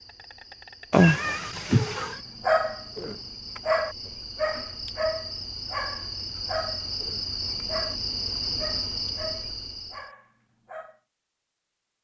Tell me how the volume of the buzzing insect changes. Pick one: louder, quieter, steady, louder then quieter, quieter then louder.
louder.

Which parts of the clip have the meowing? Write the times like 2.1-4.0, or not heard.
0.9-2.2.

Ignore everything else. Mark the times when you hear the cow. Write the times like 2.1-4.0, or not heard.
not heard.